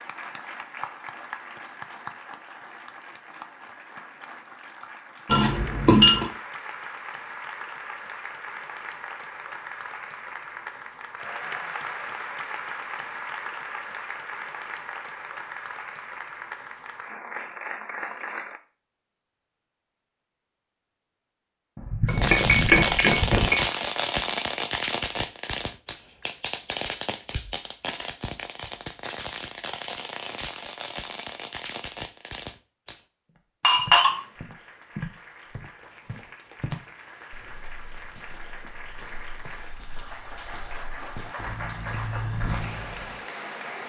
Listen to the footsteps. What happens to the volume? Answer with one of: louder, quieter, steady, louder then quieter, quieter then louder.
quieter then louder.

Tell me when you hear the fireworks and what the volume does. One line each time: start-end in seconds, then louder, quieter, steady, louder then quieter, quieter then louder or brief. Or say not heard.
22.1-33.0 quieter.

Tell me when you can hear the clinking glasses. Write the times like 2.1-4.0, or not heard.
5.2-6.3, 21.9-23.6, 33.6-34.2.